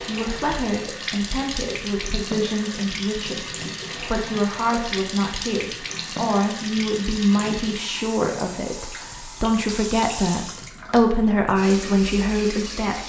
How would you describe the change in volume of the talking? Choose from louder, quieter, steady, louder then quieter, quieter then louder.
louder.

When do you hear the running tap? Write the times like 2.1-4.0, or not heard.
0.0-13.0.